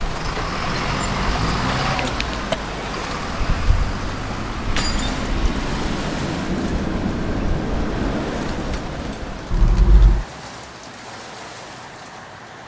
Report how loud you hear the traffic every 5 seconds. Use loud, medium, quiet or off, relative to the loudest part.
loud, loud, quiet.